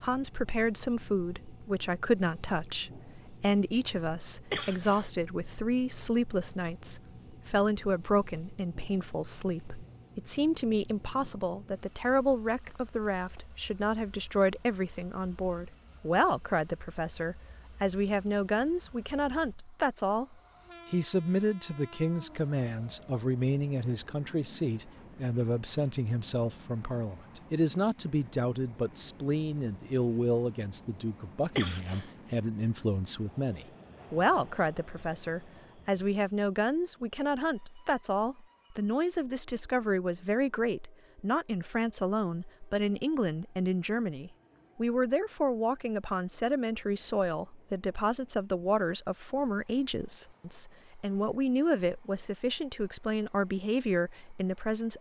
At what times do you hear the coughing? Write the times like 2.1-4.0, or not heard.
4.5-5.1, 31.6-32.1.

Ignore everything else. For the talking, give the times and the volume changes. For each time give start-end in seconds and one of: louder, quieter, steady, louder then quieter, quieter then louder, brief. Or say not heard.
0.0-54.9 steady.